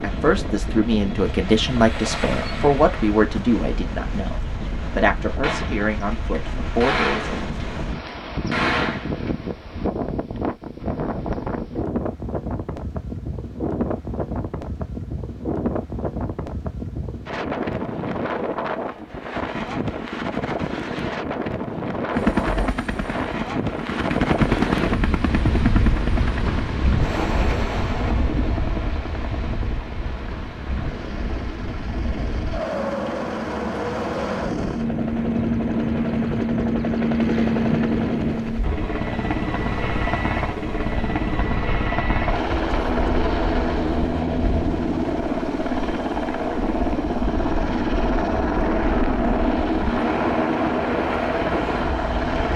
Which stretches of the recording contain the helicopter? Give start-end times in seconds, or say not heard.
0.0-3.2, 22.1-52.5.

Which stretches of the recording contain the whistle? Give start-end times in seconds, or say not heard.
not heard.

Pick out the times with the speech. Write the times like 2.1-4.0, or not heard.
0.0-7.4.